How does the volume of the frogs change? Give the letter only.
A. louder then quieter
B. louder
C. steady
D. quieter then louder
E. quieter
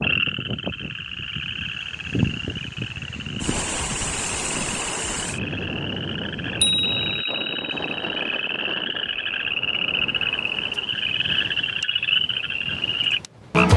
B.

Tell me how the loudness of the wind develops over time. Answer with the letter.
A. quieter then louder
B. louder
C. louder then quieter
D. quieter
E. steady
D.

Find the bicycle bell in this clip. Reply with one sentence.
You can hear the bicycle bell from 6.6 to 8.1 s.